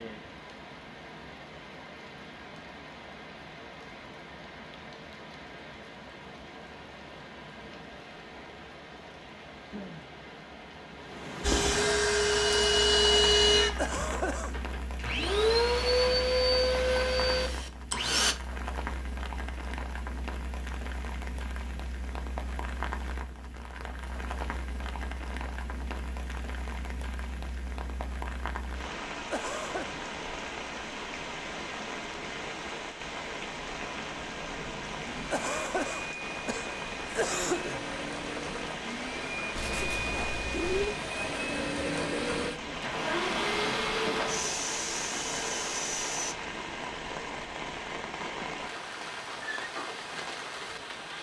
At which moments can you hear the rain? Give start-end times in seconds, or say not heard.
0.0-51.1.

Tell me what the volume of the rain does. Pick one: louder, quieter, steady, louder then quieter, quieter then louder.
louder.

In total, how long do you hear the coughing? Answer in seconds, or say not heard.
4 s.